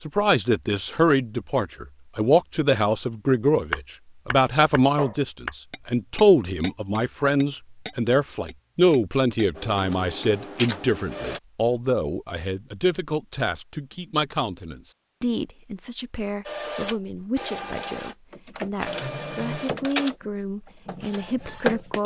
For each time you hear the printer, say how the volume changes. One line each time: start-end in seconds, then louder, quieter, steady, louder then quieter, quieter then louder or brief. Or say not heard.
9.6-11.4 brief
16.4-22.0 louder then quieter.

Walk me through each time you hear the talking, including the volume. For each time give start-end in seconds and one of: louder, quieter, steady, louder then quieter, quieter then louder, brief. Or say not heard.
0.1-22.0 quieter.